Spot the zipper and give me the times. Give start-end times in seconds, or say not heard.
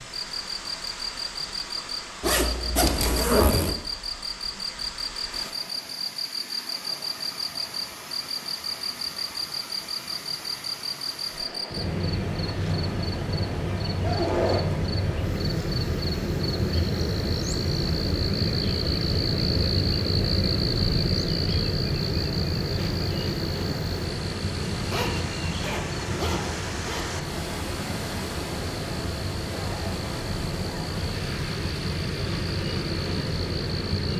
2.2-3.8, 14.0-14.8, 24.8-27.2.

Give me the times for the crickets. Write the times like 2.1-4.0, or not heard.
0.1-34.1.